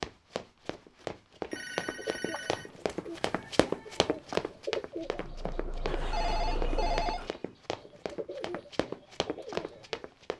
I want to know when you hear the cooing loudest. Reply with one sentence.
The volume of the cooing peaks at 5 seconds.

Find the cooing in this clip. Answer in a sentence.
The cooing can be heard from 1.4 to 10.0 s.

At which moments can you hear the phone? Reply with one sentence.
You can hear the phone from 1.5 to 2.8 s and from 5.8 to 7.3 s.